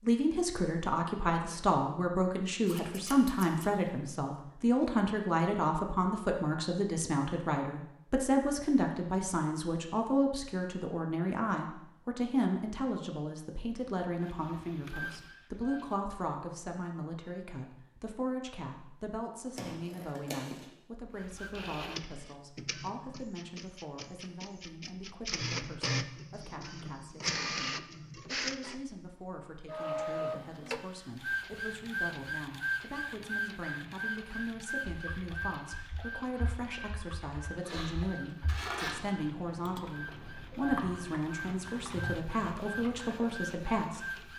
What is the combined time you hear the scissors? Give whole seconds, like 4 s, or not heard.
4 s.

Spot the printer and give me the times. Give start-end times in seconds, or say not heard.
14.2-16.0, 21.1-44.3.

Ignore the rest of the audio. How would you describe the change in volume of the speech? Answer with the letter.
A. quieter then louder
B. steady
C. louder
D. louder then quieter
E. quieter
A.